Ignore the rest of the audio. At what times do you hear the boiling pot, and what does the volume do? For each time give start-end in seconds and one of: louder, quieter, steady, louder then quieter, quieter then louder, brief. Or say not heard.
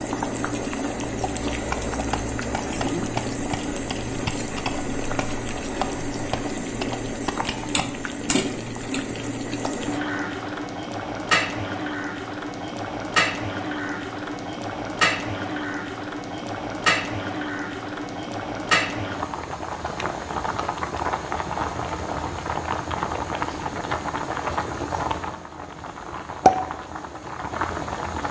0.0-28.2 steady.